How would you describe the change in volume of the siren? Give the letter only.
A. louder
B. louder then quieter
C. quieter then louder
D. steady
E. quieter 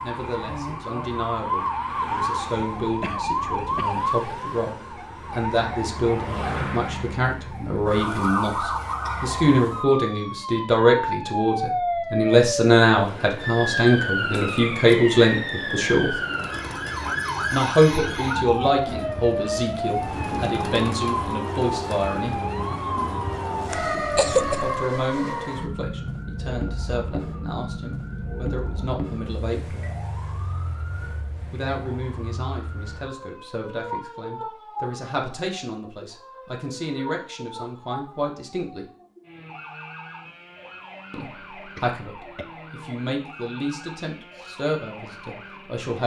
E.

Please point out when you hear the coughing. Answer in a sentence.
You can hear the coughing from 2.5 to 4.1 s, from 23.7 to 24.6 s and from 41.8 to 42.5 s.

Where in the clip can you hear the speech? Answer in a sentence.
You can hear the speech from 0.0 to 16.2 s, from 17.5 to 22.4 s, from 24.6 to 29.9 s, from 31.5 to 38.9 s and from 41.1 to 46.0 s.